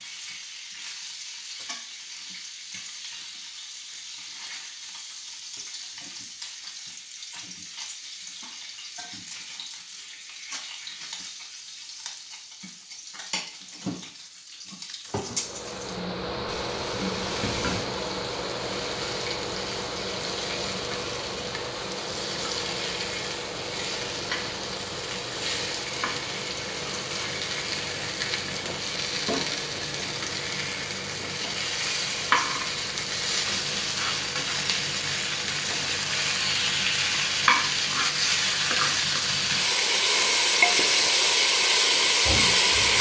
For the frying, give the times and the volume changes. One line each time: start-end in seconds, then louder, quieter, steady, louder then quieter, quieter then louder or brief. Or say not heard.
0.0-42.9 louder.